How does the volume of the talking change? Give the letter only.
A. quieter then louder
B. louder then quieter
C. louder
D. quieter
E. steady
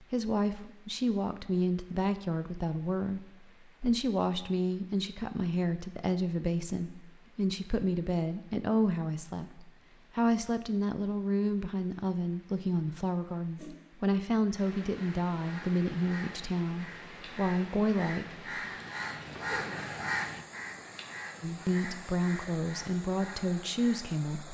E.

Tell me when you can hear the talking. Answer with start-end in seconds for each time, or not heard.
0.0-18.4, 21.4-24.4.